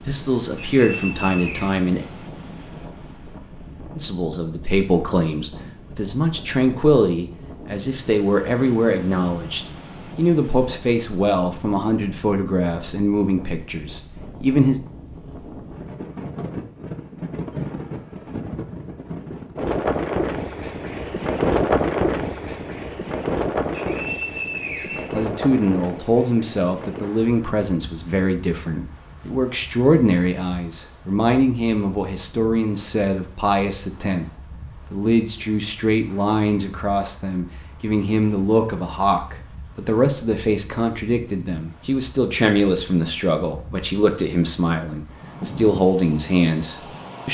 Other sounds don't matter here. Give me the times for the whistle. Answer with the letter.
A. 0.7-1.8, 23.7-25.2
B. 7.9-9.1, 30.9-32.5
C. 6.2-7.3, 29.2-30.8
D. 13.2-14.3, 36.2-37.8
A.